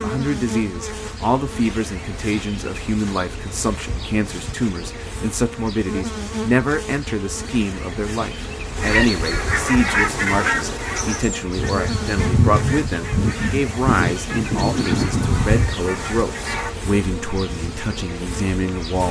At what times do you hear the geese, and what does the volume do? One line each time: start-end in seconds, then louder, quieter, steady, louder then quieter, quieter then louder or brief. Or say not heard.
8.8-16.8 quieter then louder.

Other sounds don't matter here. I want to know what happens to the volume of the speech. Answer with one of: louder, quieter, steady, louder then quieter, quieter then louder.
steady.